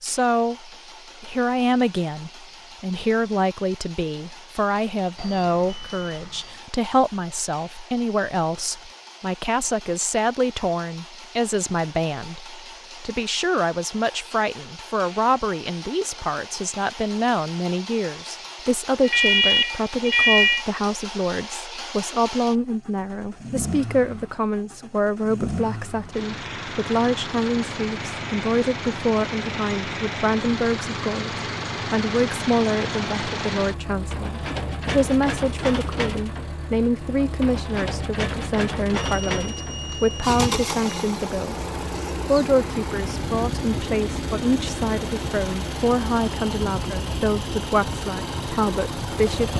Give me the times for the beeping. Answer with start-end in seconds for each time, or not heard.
5.2-6.6, 19.0-20.6, 38.9-40.9.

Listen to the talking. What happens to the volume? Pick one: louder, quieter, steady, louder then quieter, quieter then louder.
steady.